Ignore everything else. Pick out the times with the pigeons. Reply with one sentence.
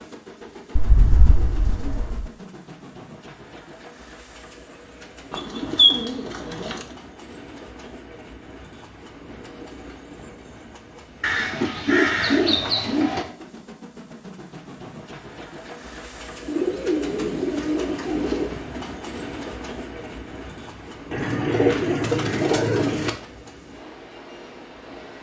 You can hear the pigeons from 0.8 to 2.2 s, from 5.3 to 6.8 s, from 11.2 to 13.2 s, from 16.4 to 18.5 s and from 21.1 to 23.1 s.